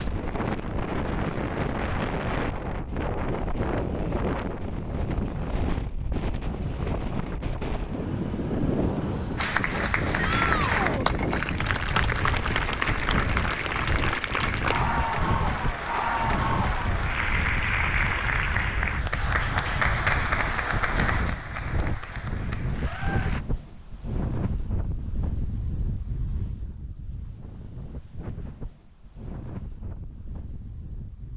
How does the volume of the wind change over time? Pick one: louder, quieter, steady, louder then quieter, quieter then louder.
quieter.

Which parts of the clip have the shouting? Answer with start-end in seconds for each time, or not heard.
10.2-11.1.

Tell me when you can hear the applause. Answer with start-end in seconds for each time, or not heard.
9.3-23.4.